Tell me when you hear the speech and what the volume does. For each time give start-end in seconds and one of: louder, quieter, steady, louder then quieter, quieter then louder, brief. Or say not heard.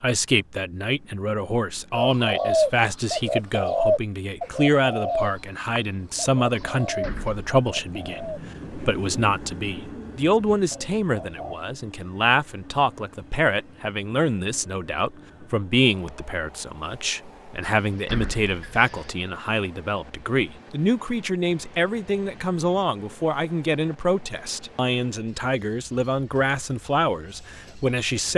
0.0-28.3 steady.